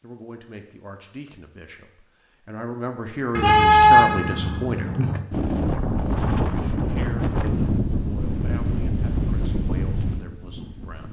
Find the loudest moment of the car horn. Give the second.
4 s.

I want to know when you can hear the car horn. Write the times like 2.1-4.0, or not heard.
3.4-5.2.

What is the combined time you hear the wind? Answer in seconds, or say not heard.
6 s.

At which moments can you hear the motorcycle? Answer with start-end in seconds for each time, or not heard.
not heard.